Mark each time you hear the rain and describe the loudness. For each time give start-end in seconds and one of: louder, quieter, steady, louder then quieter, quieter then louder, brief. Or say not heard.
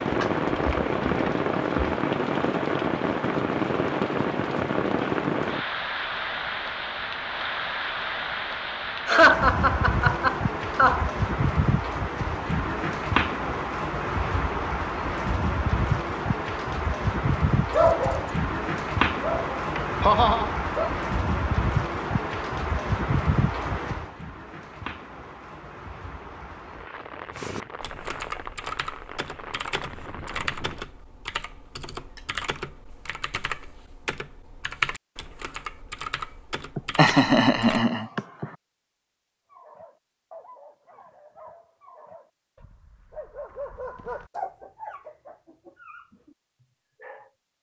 0.0-30.9 quieter.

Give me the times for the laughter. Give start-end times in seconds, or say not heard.
9.1-11.1, 19.8-20.5, 36.8-38.5.